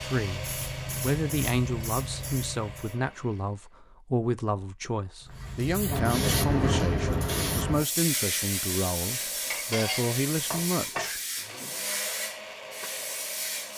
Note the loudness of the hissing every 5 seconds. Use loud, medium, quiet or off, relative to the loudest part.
medium, loud, medium.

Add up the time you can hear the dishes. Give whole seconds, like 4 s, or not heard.
2 s.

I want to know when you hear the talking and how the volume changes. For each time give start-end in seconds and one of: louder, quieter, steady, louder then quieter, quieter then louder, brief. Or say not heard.
0.0-11.2 steady.